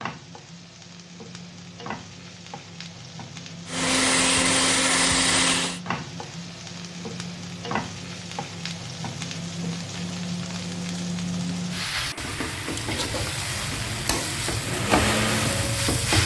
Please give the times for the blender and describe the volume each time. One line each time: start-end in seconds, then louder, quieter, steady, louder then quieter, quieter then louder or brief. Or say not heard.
3.6-5.8 brief
11.9-15.9 louder.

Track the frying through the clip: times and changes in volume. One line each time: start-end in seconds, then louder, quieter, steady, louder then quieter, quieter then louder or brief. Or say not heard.
0.0-16.2 louder.